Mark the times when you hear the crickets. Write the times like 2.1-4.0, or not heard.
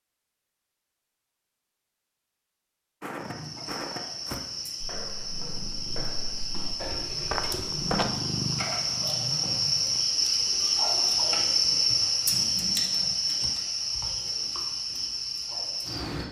3.1-16.2.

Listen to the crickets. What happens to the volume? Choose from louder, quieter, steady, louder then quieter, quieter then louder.
louder then quieter.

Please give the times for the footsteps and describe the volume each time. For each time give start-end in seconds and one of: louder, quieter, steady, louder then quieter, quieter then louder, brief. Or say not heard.
3.0-8.1 quieter then louder.